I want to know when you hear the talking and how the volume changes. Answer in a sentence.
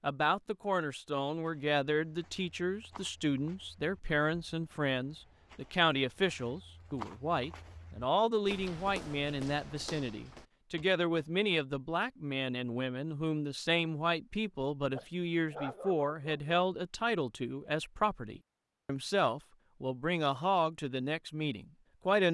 The talking can be heard from 0.0 to 22.2 s, at a steady volume.